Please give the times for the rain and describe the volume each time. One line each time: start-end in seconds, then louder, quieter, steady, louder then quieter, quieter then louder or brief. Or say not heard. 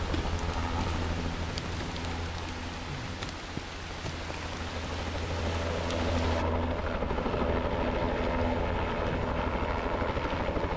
0.0-6.5 steady.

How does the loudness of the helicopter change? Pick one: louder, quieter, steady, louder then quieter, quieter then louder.
quieter then louder.